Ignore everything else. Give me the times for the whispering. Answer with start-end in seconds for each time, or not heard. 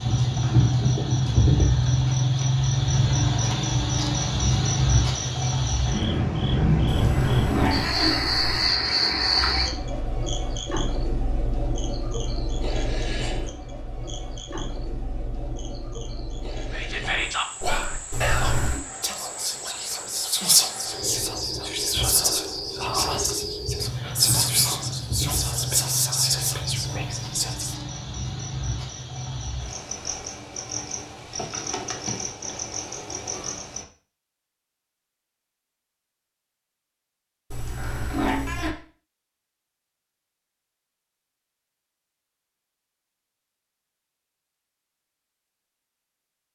16.7-27.8.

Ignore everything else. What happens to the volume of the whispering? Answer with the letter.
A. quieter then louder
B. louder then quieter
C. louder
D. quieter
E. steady
E.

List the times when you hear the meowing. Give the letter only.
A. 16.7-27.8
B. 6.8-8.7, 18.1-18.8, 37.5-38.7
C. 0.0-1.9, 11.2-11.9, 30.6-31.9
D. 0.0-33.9
B.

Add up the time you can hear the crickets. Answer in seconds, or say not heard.
34 s.